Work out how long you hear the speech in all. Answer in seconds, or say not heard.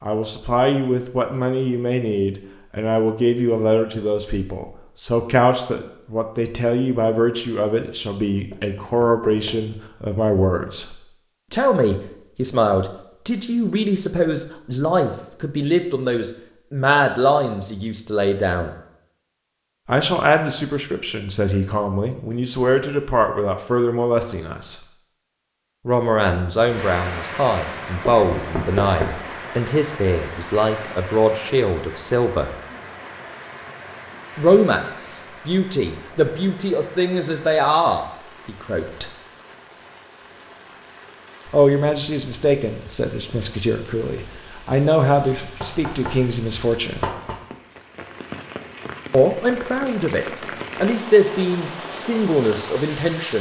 45 s.